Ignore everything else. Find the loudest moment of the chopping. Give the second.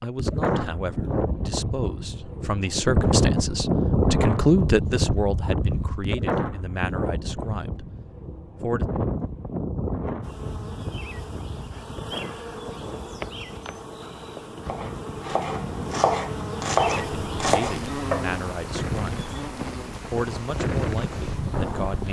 17 s.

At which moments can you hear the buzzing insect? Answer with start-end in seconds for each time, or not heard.
10.2-22.0.